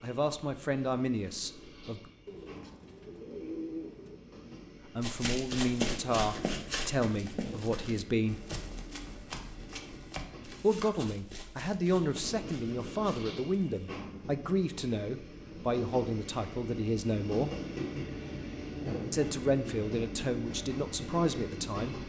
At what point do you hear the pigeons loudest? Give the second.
4 s.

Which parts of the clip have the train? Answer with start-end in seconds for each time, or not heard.
0.0-22.0.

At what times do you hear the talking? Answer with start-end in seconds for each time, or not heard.
0.0-2.0, 5.0-8.4, 10.6-17.5, 19.1-22.0.